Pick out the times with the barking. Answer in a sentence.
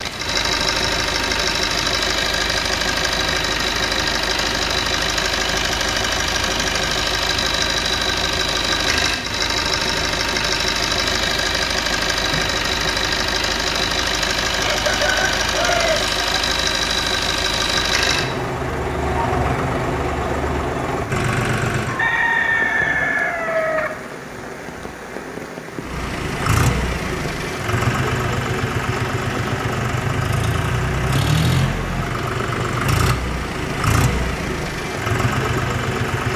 The barking can't be heard in this clip.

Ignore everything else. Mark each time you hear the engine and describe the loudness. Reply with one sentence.
The engine can be heard from 0.0 to 22.1 s, at a steady volume; and from 25.7 to 36.3 s, at a steady volume.